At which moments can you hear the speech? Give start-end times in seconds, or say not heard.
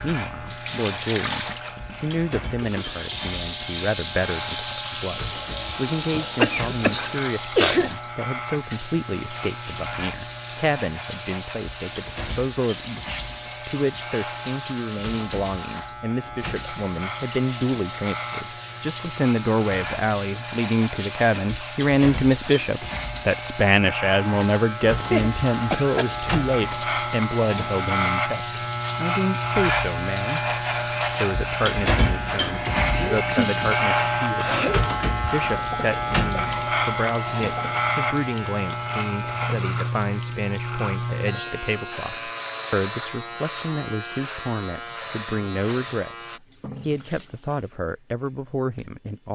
0.0-49.2.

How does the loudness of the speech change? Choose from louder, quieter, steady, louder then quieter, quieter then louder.
louder then quieter.